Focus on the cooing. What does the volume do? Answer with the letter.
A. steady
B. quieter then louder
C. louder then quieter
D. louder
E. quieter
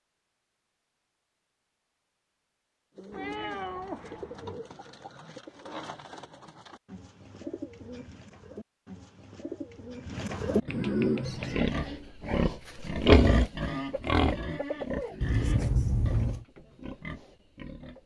D.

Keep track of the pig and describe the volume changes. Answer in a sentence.
The loudness of the pig goes up, then down.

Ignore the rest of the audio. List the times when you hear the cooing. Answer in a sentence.
You can hear the cooing from 3.0 to 11.7 s.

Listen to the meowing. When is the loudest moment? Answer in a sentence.
The volume of the meowing peaks at 16 seconds.